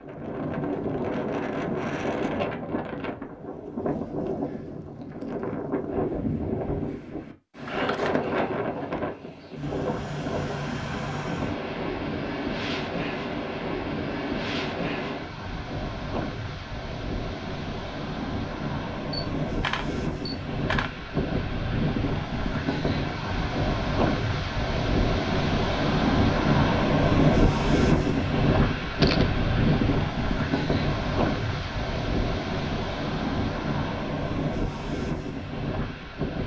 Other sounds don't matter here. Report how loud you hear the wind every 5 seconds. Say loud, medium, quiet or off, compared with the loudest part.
medium, medium, medium, medium, medium, loud, medium, medium.